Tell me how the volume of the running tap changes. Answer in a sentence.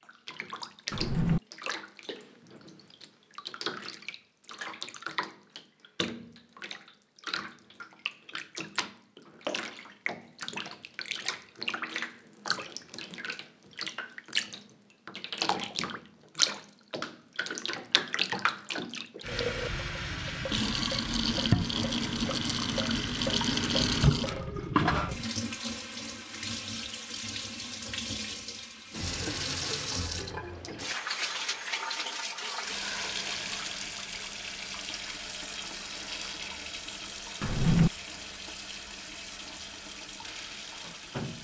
The volume of the running tap goes up, then down.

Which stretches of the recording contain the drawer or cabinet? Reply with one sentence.
You can hear the drawer or cabinet from 0.9 to 1.4 s and from 37.4 to 37.9 s.